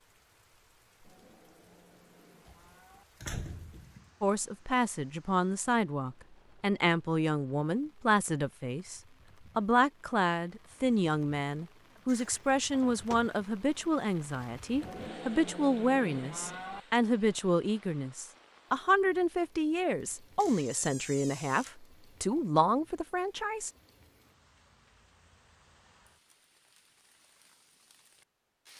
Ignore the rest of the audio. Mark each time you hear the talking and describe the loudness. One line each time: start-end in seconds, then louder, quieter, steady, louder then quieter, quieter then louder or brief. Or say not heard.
4.2-23.7 steady.